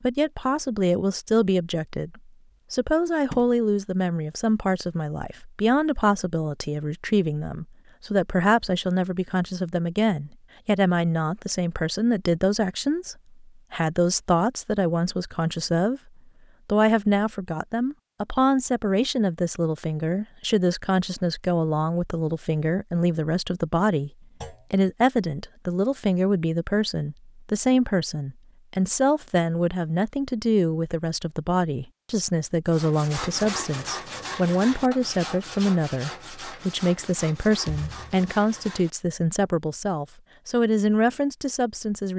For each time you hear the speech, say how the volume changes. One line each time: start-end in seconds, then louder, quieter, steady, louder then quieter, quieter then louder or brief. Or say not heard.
0.0-16.0 steady
16.6-24.1 steady
24.7-42.1 steady.